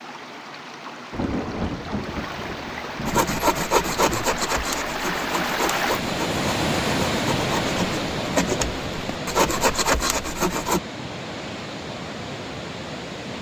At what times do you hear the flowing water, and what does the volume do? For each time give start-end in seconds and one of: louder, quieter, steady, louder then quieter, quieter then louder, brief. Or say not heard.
0.0-13.3 louder then quieter.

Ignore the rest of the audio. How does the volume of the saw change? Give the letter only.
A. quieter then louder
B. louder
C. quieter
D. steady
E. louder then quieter
A.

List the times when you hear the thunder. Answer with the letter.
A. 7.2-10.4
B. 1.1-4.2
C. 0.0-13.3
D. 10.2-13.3
B.